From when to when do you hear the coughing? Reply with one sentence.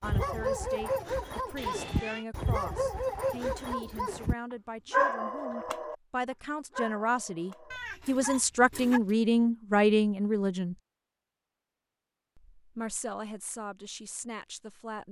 The coughing can't be heard in this clip.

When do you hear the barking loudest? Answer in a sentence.
The loudest moment of the barking is at 5 seconds.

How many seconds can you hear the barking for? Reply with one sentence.
You can hear the barking for 8 seconds altogether.